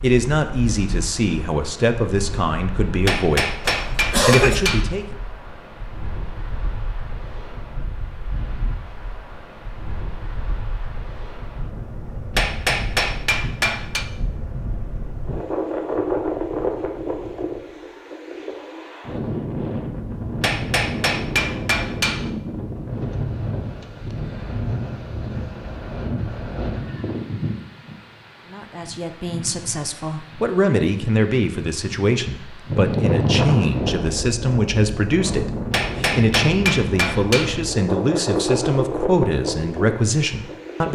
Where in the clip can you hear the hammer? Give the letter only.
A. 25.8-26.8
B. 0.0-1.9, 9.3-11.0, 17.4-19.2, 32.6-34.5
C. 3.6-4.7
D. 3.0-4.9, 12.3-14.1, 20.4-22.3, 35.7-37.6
D.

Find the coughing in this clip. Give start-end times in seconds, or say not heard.
3.6-4.7.